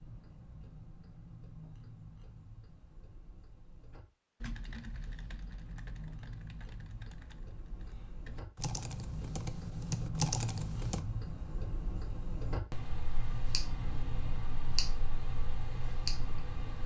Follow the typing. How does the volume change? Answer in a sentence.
The volume of the typing goes down, then up.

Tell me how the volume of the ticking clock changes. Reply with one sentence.
The volume of the ticking clock goes up.